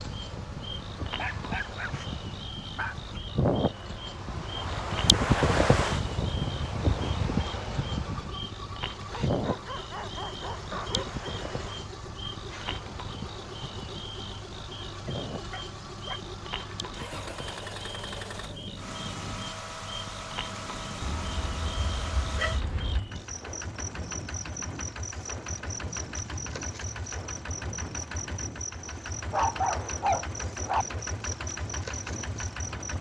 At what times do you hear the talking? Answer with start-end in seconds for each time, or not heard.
not heard.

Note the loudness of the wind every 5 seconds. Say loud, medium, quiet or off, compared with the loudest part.
medium, loud, quiet, quiet, quiet, quiet, quiet.